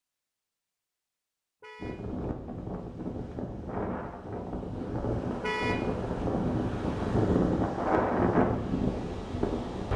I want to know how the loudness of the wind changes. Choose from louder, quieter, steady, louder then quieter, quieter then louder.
louder.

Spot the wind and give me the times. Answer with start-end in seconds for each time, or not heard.
1.8-9.9.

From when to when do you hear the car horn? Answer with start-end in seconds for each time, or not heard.
1.6-2.0, 5.4-5.9.